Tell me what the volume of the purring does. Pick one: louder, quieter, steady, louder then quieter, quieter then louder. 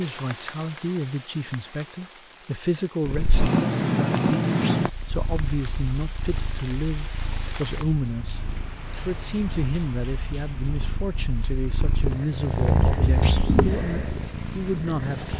quieter then louder.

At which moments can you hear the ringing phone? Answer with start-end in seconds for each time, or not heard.
not heard.